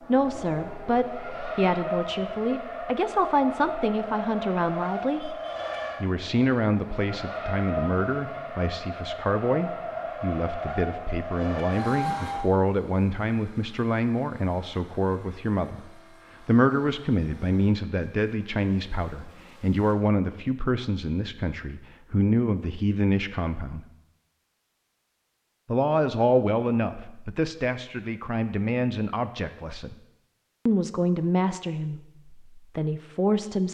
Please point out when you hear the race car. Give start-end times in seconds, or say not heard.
0.0-19.9.